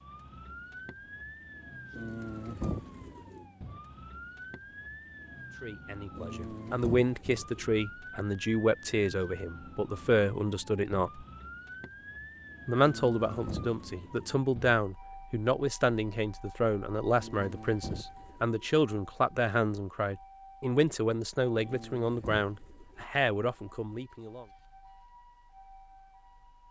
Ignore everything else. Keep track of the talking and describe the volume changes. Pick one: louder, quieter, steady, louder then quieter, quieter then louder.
steady.